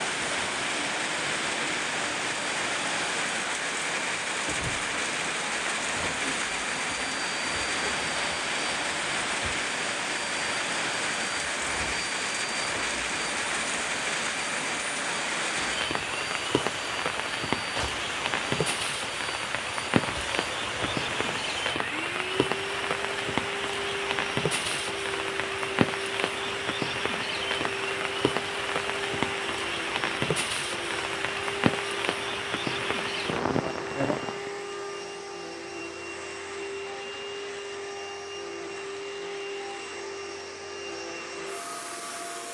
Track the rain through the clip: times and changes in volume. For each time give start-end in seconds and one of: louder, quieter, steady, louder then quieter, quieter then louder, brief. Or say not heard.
0.0-34.5 steady.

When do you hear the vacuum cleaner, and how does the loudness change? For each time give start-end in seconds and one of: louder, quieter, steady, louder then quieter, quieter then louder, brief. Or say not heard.
0.0-42.4 steady.